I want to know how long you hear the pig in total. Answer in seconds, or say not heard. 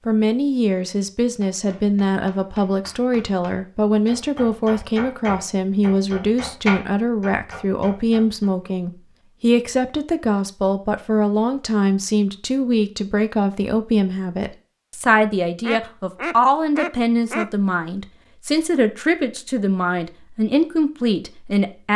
not heard.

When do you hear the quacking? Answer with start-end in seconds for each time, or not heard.
15.6-17.4.